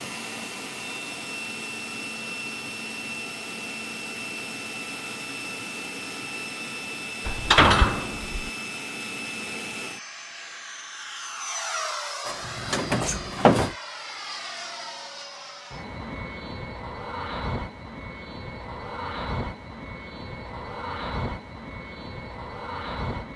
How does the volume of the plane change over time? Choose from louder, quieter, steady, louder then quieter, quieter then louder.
steady.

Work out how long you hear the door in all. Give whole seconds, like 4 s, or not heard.
3 s.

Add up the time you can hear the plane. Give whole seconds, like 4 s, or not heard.
23 s.